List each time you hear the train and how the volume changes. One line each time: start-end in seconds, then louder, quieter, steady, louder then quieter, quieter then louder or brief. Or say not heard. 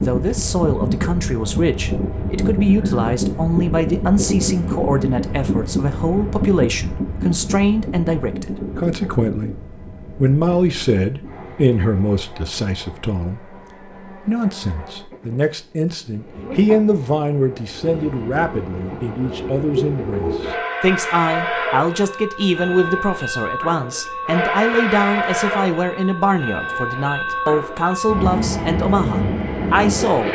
0.0-30.3 quieter then louder.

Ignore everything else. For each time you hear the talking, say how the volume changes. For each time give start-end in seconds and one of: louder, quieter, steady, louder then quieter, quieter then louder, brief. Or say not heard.
0.0-30.3 steady.